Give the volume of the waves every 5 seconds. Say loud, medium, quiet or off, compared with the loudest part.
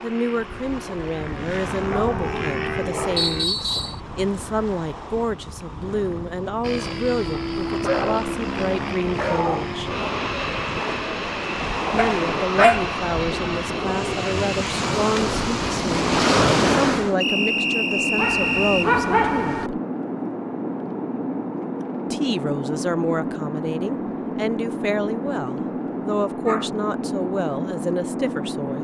quiet, quiet, medium, loud, off, off.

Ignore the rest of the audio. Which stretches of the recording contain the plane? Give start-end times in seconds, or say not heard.
0.0-3.5, 6.6-28.8.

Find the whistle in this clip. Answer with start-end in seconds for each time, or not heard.
3.1-4.0, 17.2-18.9.